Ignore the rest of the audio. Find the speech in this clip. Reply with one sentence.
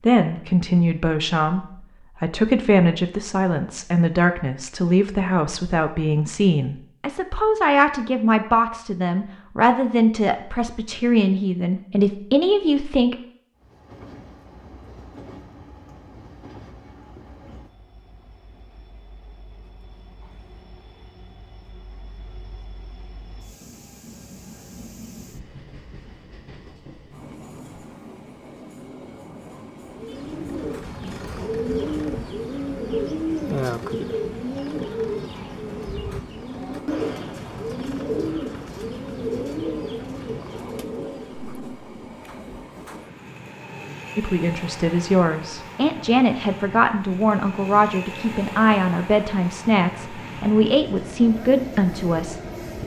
You can hear the speech from 0.1 to 13.2 s and from 44.1 to 52.4 s.